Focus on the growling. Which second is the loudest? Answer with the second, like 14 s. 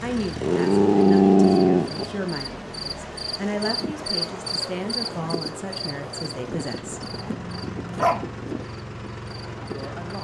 1 s.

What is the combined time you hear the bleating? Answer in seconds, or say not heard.
not heard.